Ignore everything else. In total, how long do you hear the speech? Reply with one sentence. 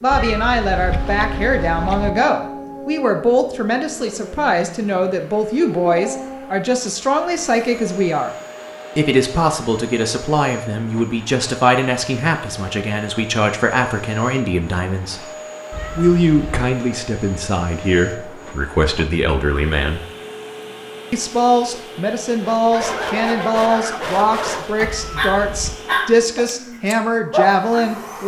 The speech can be heard for 26 seconds in total.